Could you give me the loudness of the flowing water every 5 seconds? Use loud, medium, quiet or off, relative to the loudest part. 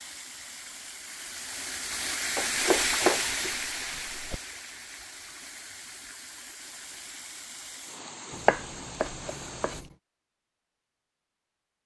loud, medium, off.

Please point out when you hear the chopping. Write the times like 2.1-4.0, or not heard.
2.4-4.4, 8.3-9.8.